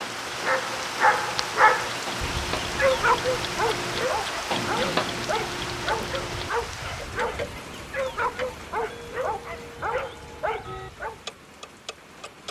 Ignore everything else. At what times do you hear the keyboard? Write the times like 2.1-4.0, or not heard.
not heard.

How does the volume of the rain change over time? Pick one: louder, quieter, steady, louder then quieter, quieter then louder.
quieter.